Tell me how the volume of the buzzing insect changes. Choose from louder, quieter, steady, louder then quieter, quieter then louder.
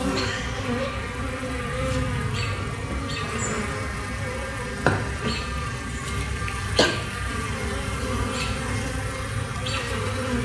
steady.